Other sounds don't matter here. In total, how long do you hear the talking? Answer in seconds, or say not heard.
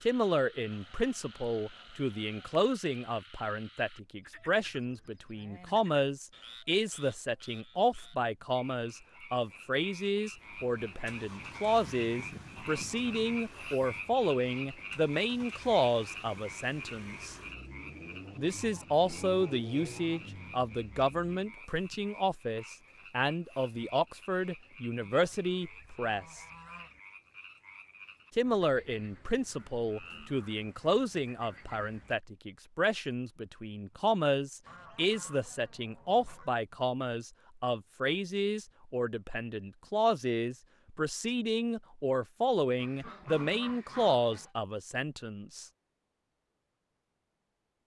43 s.